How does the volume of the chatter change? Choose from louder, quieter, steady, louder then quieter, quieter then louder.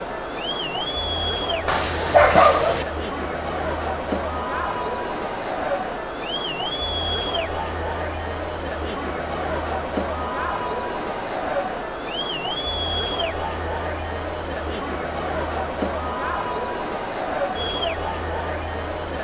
steady.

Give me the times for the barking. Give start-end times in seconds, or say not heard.
1.6-2.9.